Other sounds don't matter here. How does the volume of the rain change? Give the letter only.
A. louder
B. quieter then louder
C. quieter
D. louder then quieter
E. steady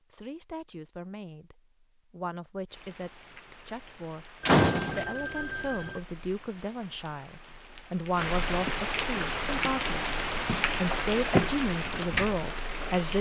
A.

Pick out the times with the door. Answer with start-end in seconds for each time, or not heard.
4.5-5.0.